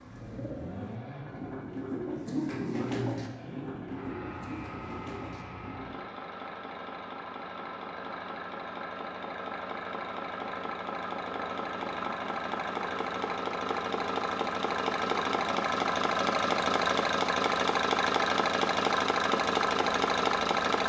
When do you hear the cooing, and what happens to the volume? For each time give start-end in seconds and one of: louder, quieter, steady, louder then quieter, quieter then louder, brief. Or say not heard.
0.0-6.0 louder then quieter.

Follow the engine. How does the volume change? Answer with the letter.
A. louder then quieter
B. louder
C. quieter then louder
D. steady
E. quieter
B.